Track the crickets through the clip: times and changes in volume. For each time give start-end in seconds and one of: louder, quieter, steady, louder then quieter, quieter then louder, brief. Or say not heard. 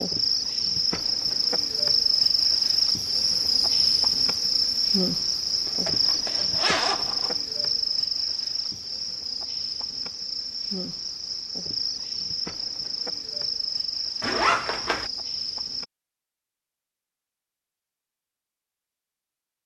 0.0-15.8 quieter.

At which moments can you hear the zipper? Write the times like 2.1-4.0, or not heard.
5.7-7.3, 14.2-15.1.